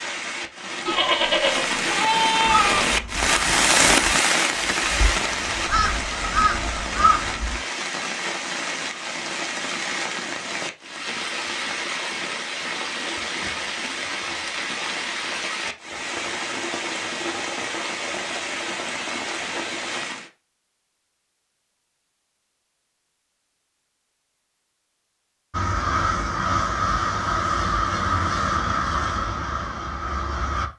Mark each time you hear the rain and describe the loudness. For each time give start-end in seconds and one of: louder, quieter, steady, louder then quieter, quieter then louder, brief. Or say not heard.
0.0-20.3 quieter.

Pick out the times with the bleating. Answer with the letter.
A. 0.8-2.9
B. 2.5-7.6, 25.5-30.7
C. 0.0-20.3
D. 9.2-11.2
A.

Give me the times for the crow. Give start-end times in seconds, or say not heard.
2.5-7.6, 25.5-30.7.